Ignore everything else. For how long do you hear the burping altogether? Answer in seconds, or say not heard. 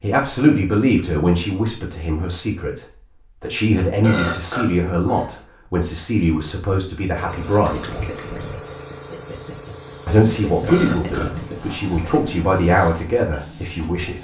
3 s.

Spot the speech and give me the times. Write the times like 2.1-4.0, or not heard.
0.0-8.0, 10.1-14.1.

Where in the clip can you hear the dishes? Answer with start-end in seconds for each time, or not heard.
not heard.